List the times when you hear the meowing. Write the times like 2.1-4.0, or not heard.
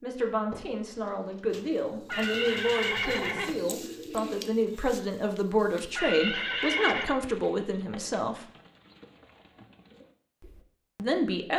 not heard.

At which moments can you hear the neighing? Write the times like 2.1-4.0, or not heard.
2.0-3.5, 6.0-7.2.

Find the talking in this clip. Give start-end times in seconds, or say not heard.
0.0-8.4, 10.9-11.5.